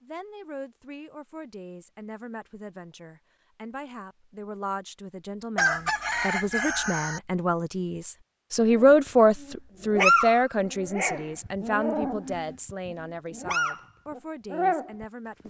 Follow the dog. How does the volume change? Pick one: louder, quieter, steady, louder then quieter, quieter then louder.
quieter then louder.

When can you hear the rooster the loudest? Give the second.
6 s.